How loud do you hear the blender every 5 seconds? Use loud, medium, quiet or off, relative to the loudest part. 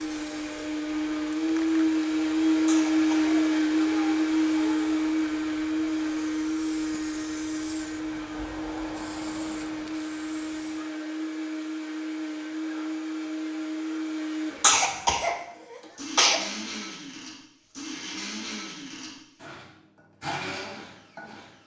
loud, medium, medium, quiet, quiet.